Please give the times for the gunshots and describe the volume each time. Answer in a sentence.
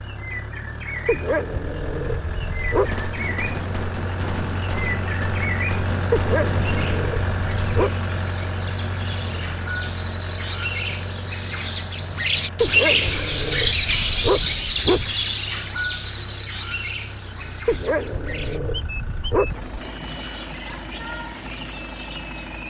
You can hear the gunshots from 2.8 to 6.9 s, at a steady volume.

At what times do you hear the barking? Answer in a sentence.
The barking can be heard from 1.1 to 3.0 s, from 6.1 to 8.0 s, from 12.6 to 15.2 s and from 17.6 to 19.8 s.